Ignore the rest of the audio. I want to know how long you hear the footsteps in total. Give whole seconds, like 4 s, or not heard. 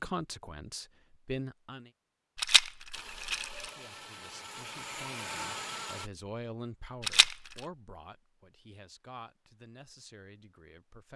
not heard.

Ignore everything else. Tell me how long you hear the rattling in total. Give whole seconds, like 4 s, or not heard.
2 s.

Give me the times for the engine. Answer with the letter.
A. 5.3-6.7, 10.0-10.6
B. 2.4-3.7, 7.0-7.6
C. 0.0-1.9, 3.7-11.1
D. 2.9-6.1
D.